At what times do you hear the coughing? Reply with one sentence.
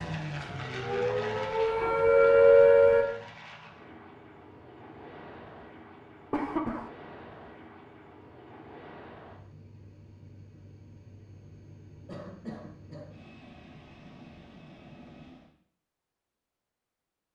The coughing can be heard from 1.6 to 2.5 s, from 6.3 to 6.9 s and from 12.1 to 13.2 s.